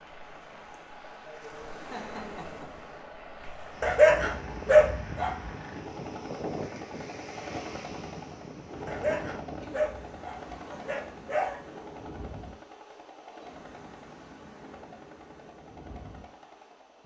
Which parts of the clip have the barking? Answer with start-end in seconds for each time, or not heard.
3.8-5.5, 8.8-11.6.